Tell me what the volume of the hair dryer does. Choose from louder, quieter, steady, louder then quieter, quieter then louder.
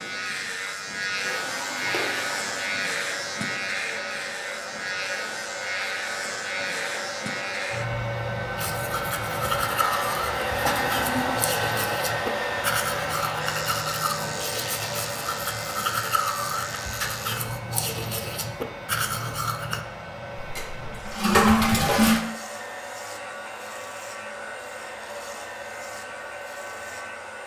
louder then quieter.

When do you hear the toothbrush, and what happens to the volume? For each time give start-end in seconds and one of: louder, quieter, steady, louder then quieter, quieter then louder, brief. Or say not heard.
8.6-19.8 steady.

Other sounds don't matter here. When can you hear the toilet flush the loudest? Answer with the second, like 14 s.
22 s.